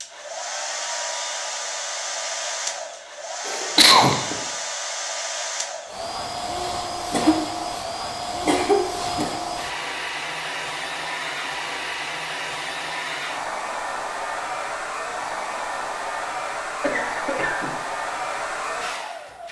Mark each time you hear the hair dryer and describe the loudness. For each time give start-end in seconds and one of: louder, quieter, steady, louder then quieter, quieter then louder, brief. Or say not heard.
0.0-19.4 steady.